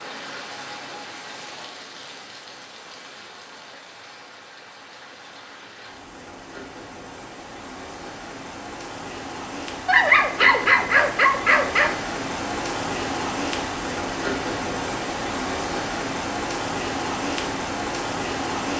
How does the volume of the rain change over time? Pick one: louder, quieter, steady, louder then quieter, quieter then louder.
louder.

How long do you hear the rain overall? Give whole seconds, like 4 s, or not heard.
19 s.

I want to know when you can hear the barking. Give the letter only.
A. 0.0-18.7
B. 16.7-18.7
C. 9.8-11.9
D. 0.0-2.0
C.